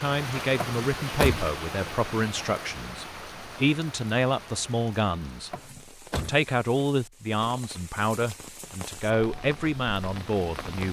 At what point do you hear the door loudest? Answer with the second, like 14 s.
1 s.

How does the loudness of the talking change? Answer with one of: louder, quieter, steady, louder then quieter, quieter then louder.
steady.